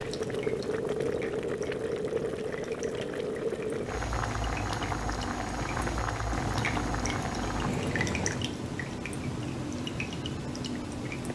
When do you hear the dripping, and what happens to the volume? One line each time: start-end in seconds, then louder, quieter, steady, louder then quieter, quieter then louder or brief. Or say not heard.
0.0-11.2 louder.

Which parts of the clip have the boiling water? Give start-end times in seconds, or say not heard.
0.0-8.5.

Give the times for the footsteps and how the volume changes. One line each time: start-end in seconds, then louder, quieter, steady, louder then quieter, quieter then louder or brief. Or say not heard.
not heard.